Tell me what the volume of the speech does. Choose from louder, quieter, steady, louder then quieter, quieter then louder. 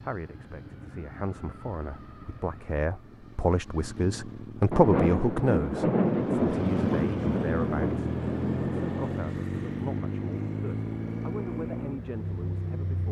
louder then quieter.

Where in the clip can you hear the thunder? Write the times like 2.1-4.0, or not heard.
4.7-9.3.